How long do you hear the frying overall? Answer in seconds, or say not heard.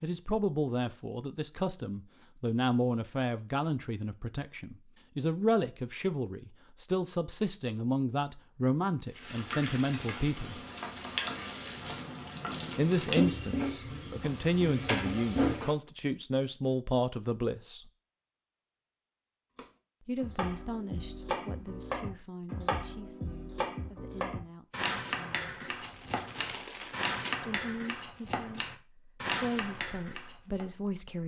7 s.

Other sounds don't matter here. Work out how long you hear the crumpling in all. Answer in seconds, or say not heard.
2 s.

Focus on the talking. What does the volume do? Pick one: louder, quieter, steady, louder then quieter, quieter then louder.
quieter.